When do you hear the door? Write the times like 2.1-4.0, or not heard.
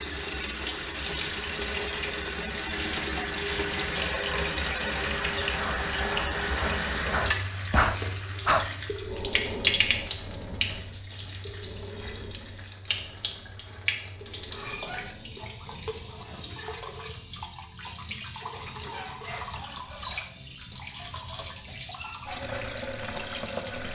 not heard.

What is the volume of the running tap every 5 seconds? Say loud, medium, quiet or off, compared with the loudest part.
loud, loud, medium, medium, medium.